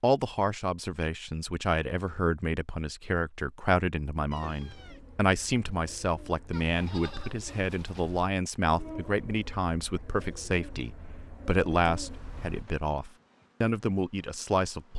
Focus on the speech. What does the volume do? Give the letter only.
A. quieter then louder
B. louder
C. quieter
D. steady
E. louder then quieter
D.